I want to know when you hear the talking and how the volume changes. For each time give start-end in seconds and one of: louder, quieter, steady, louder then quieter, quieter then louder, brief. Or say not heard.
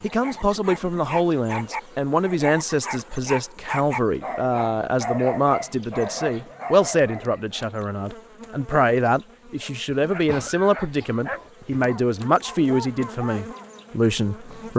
0.0-14.7 steady.